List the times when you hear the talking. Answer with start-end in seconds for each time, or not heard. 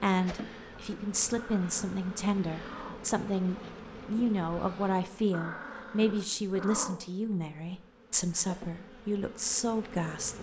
0.0-10.3.